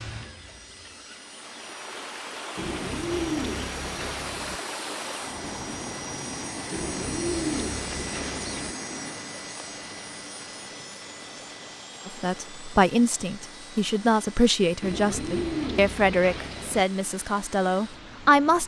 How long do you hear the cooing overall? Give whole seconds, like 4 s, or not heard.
6 s.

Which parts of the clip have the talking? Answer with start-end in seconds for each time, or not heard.
12.1-18.6.